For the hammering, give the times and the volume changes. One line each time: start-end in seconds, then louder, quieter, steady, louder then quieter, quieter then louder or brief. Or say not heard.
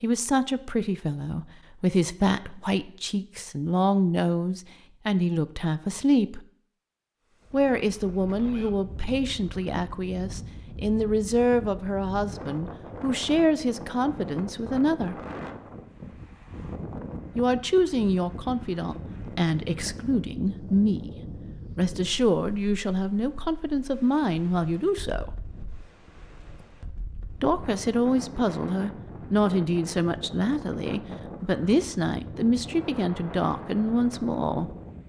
not heard.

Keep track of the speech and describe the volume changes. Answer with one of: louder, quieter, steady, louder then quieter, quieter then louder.
steady.